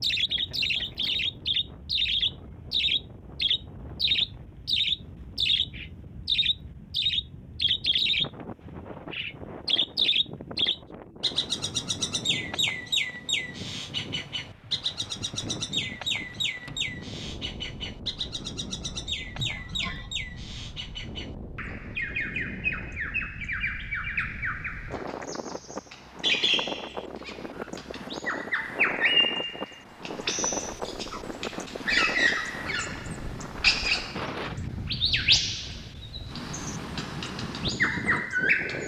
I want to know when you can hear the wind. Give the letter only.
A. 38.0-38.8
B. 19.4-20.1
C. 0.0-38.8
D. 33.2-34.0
C.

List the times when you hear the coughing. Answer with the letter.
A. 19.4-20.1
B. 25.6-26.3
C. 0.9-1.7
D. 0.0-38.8
A.